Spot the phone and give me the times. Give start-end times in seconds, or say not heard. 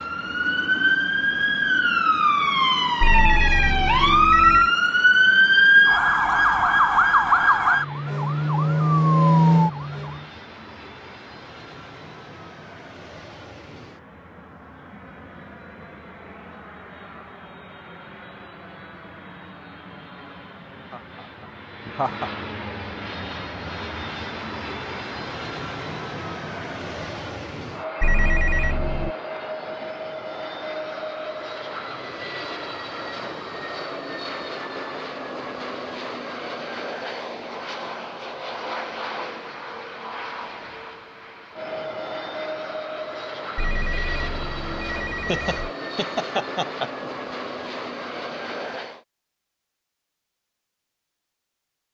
3.0-4.7, 28.0-29.1, 43.5-45.7.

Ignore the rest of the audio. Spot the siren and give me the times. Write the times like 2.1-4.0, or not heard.
0.0-10.2.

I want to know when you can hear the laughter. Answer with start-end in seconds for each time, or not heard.
20.9-22.3, 45.2-47.1.